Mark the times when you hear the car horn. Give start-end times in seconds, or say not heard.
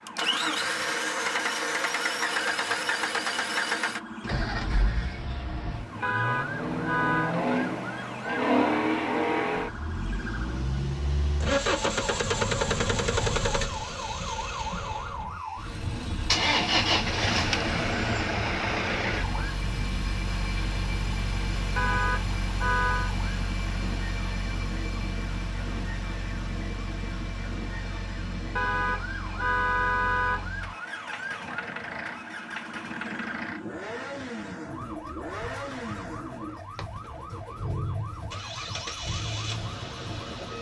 6.0-7.3, 21.8-23.1, 28.6-30.5.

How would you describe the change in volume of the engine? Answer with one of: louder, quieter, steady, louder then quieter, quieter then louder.
quieter.